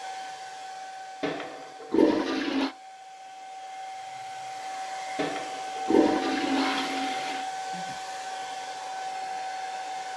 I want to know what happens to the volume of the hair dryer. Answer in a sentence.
The volume of the hair dryer goes up.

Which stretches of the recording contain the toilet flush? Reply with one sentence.
You can hear the toilet flush from 1.2 to 2.7 s and from 5.2 to 7.5 s.